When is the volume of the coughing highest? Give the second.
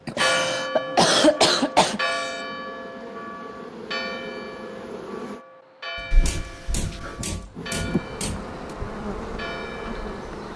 1 s.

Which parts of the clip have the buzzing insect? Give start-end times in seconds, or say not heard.
0.0-5.4, 7.5-10.5.